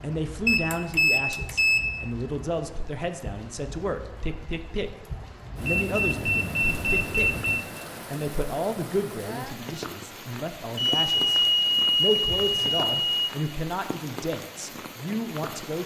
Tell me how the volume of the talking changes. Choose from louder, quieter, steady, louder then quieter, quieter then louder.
steady.